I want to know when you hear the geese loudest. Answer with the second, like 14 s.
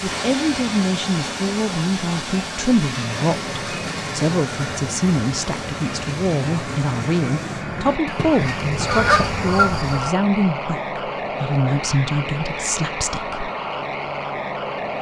9 s.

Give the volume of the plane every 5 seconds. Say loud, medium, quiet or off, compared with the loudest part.
medium, loud, loud.